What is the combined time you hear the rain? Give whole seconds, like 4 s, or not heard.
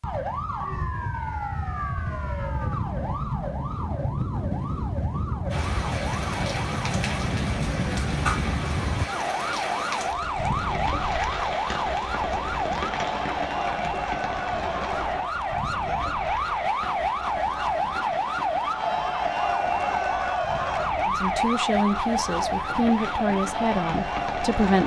19 s.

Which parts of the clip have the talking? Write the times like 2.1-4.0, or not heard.
21.1-24.8.